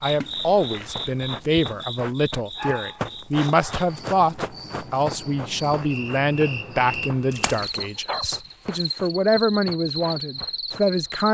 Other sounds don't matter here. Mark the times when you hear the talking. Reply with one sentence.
The talking can be heard from 0.0 to 11.2 s.